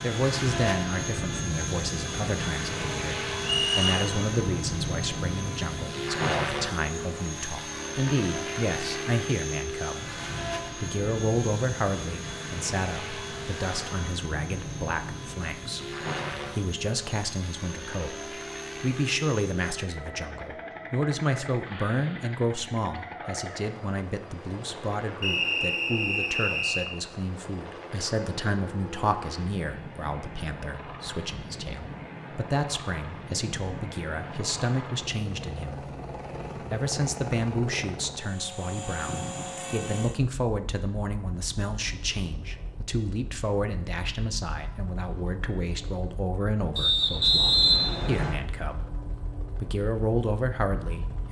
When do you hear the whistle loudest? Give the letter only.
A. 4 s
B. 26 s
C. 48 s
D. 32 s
C.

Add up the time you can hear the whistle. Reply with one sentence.
You can hear the whistle for 4 seconds altogether.